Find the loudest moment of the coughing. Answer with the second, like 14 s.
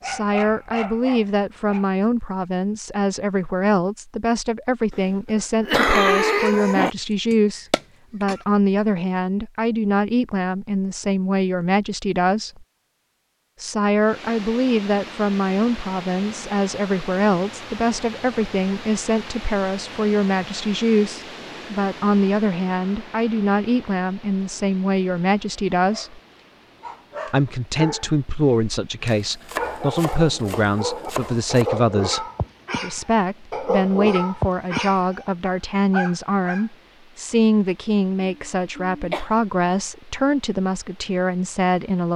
6 s.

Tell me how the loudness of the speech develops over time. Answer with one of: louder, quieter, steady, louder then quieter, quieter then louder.
steady.